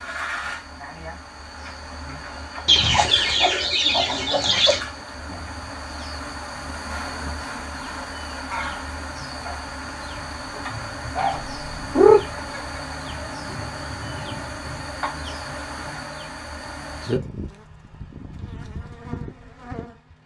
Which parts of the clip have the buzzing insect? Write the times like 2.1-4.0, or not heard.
0.0-20.2.